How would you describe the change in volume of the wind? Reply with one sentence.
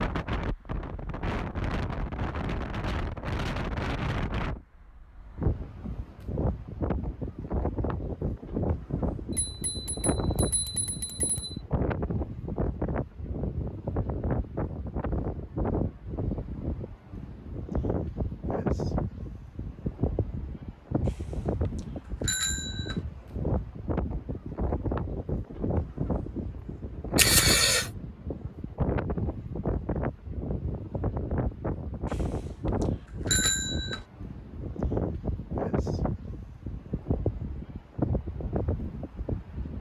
The loudness of the wind stays about the same.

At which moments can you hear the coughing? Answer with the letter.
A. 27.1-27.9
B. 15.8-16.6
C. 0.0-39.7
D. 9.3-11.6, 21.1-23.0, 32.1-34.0
A.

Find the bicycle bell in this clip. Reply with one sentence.
You can hear the bicycle bell from 9.3 to 11.6 s, from 21.1 to 23.0 s and from 32.1 to 34.0 s.